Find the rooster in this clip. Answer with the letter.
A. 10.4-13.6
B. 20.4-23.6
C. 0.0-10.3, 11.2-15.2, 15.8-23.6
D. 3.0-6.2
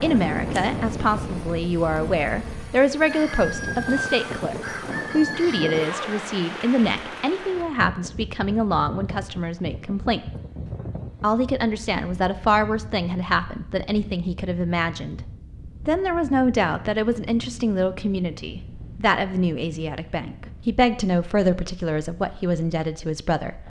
D.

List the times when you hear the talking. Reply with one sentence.
You can hear the talking from 0.0 to 10.3 s, from 11.2 to 15.2 s and from 15.8 to 23.6 s.